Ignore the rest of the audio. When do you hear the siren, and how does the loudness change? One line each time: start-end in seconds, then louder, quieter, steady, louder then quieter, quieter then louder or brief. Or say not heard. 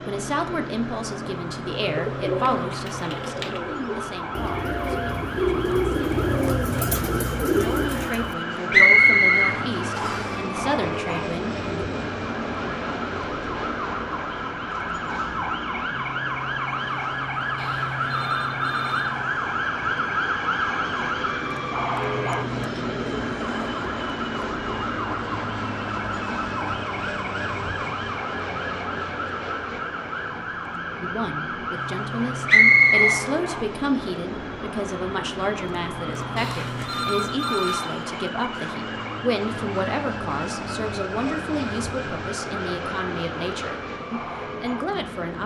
0.0-45.4 louder then quieter.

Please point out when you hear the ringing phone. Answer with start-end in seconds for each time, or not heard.
17.6-19.1, 36.4-38.0.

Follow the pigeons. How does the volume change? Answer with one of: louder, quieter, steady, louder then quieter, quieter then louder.
louder.